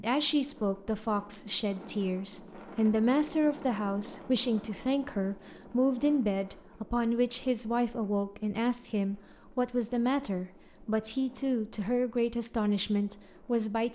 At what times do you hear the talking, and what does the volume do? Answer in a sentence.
The talking can be heard from 0.0 to 13.9 s, at a steady volume.